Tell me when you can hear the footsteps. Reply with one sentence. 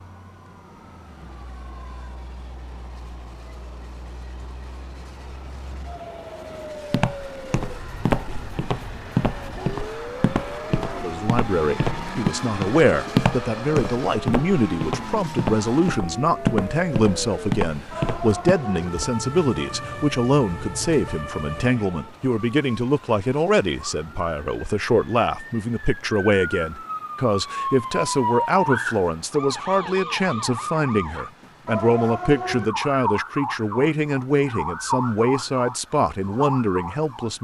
The footsteps can be heard from 6.9 to 19.1 s.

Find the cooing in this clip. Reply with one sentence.
The cooing can't be heard in this clip.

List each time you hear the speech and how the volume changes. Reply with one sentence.
You can hear the speech from 10.9 to 37.3 s, at a steady volume.